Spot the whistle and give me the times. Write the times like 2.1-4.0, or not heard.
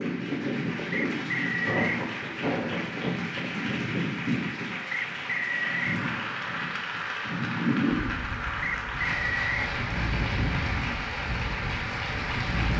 0.9-2.0, 4.9-6.0, 8.6-9.7.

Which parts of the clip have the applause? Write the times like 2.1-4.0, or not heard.
0.0-12.7.